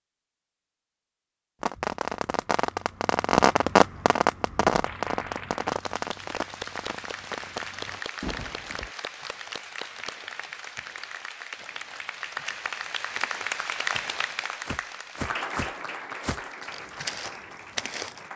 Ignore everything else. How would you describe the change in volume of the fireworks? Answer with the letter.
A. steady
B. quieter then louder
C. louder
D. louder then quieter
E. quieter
D.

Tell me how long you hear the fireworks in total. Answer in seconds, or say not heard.
7 s.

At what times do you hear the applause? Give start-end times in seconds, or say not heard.
4.8-18.3.